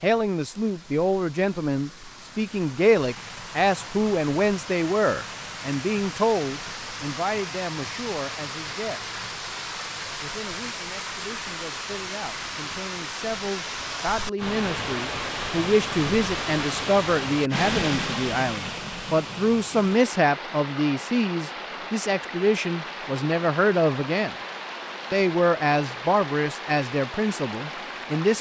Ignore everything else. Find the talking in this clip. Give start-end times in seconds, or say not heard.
0.0-9.1, 10.2-24.4, 25.1-28.3.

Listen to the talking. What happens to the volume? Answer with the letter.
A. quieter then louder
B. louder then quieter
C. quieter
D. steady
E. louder
A.